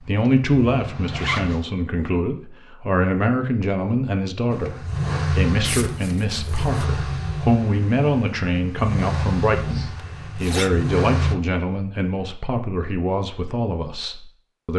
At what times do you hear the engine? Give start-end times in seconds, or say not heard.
0.0-1.6, 4.5-11.3.